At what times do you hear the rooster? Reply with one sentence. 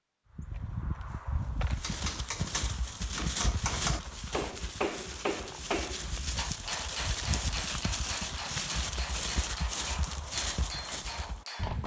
You can't hear the rooster here.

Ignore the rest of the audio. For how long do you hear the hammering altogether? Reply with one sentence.
The hammering can be heard for 10 seconds in total.